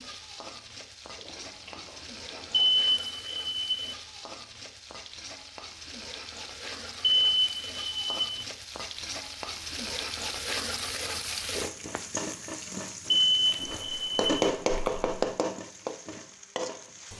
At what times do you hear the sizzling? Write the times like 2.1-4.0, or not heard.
0.0-17.1.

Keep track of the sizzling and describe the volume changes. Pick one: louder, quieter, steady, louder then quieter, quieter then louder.
louder.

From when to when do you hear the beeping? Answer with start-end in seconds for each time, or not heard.
2.5-4.0, 7.0-8.4, 13.1-14.3.